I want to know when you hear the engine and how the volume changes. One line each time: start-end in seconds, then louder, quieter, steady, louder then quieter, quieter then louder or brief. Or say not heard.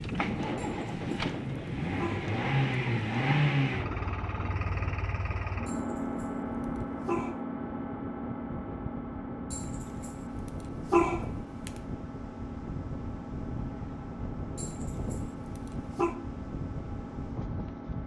0.0-18.0 quieter.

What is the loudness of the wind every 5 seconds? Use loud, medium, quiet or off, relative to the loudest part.
loud, medium, loud, loud.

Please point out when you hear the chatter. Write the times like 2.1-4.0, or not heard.
not heard.